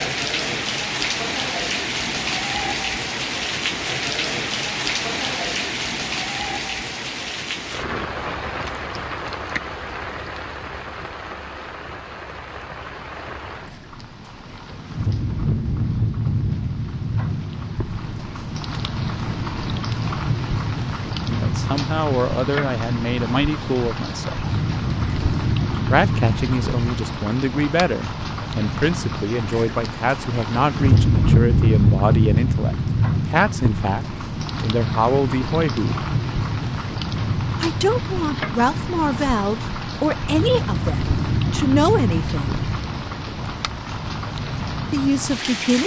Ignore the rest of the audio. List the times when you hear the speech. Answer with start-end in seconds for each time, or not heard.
21.2-24.5, 25.9-36.0, 37.6-42.6, 44.9-45.8.